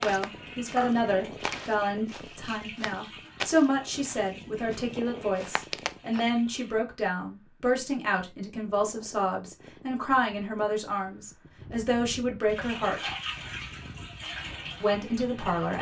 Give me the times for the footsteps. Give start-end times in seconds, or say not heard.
0.0-6.2.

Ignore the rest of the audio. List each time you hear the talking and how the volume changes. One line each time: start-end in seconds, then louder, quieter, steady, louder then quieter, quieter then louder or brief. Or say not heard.
0.0-13.1 steady
14.8-15.7 brief.